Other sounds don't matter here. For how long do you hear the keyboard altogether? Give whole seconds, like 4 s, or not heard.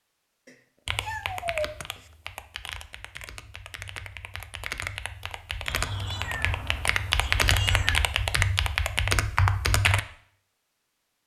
9 s.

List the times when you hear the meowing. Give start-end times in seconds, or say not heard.
0.5-2.0, 5.7-8.1.